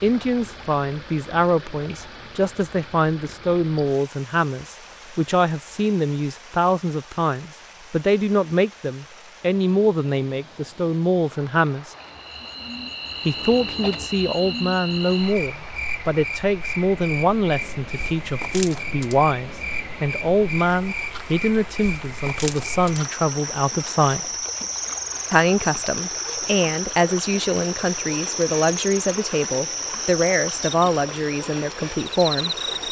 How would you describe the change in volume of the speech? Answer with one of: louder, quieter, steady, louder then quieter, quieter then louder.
steady.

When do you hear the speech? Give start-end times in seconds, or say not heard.
0.0-11.9, 13.2-24.4, 25.3-32.8.